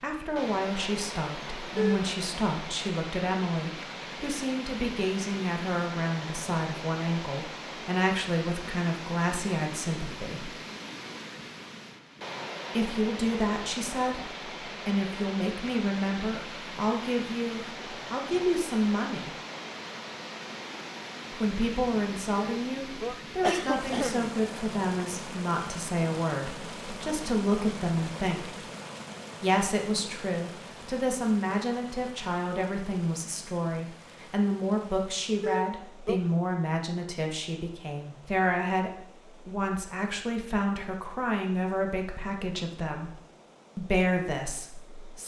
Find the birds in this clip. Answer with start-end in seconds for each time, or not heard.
not heard.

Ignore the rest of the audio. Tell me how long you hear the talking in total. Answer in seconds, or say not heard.
40 s.